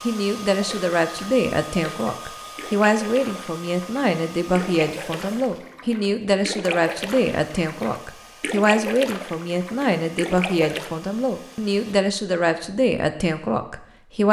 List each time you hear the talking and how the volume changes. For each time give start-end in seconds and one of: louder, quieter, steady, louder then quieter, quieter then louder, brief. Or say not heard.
0.0-14.2 steady.